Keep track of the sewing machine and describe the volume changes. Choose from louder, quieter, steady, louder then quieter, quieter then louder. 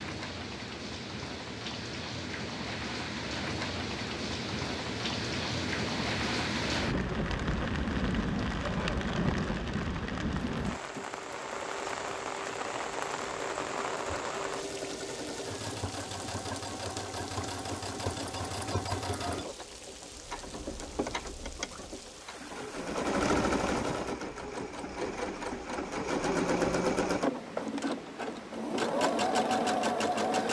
louder.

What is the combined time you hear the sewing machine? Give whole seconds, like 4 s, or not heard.
20 s.